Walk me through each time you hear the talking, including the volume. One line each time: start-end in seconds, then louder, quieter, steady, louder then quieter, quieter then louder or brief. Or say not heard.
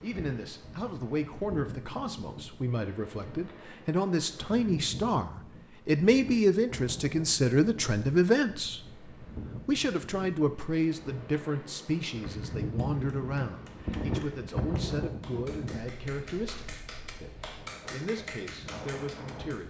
0.0-19.6 louder then quieter.